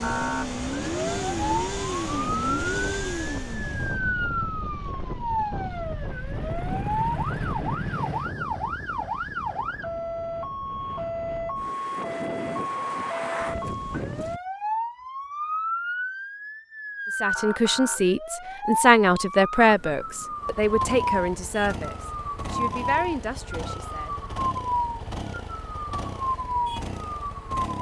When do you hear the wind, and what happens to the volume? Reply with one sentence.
You can hear the wind from 0.0 to 14.4 s, getting quieter then louder.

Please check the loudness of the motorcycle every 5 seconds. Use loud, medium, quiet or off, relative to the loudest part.
loud, loud, off, off, medium, medium.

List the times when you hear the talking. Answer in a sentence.
The talking can be heard from 17.2 to 24.1 s.